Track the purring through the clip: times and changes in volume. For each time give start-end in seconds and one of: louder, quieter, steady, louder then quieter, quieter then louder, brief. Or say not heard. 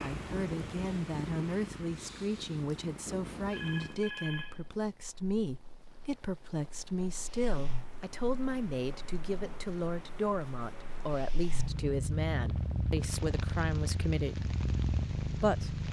0.0-15.8 quieter then louder.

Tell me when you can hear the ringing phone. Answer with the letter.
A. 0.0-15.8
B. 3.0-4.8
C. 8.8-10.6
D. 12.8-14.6
B.